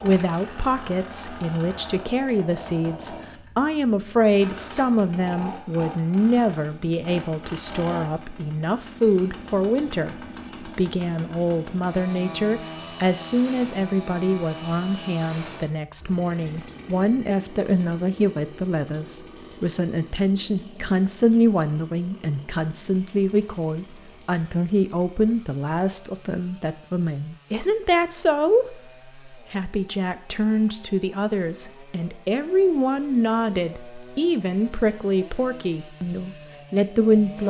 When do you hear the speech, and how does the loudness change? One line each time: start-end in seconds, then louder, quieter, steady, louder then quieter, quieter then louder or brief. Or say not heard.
0.0-37.4 steady.